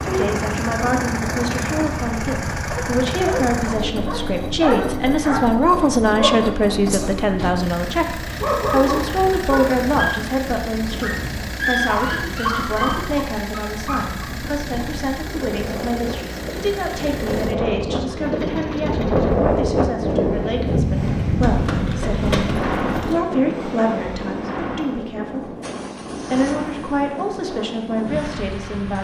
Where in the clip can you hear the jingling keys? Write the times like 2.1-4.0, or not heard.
21.4-23.2.